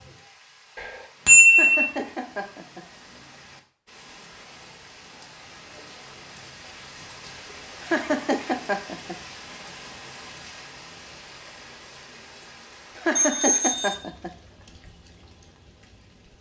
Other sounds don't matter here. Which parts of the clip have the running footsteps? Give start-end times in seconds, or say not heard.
not heard.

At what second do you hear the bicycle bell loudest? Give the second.
1 s.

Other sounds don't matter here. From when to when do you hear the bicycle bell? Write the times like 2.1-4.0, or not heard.
0.8-1.9, 13.2-13.9.